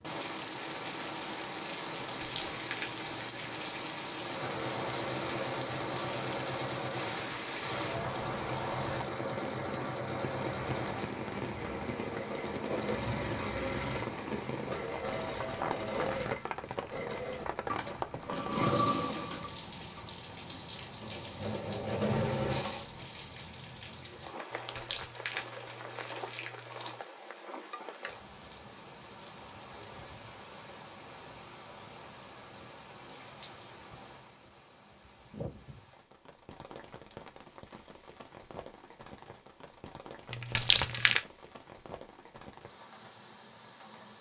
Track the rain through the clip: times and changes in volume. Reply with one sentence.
The rain can be heard from 0.0 to 44.1 s, getting quieter.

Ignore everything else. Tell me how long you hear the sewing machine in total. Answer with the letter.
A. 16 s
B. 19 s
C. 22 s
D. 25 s
B.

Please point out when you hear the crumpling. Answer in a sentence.
The crumpling can be heard from 2.0 to 3.8 s, from 24.5 to 27.0 s and from 40.3 to 41.2 s.